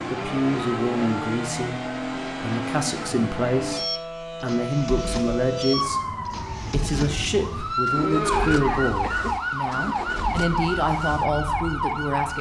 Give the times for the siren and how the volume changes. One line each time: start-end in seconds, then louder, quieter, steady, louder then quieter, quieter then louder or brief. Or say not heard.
0.0-12.3 louder.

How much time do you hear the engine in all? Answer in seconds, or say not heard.
12 s.